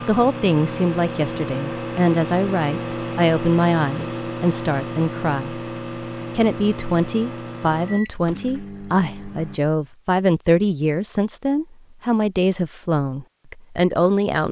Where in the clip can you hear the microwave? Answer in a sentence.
The microwave can be heard from 0.0 to 9.6 s.